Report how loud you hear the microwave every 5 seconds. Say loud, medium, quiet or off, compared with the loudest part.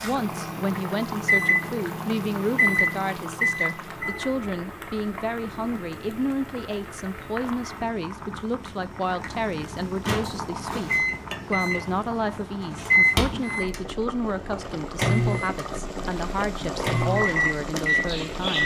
loud, off, loud, loud.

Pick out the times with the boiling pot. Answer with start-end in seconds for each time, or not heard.
0.0-18.6.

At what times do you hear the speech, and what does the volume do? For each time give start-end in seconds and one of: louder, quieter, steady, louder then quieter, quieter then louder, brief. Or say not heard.
0.0-18.6 steady.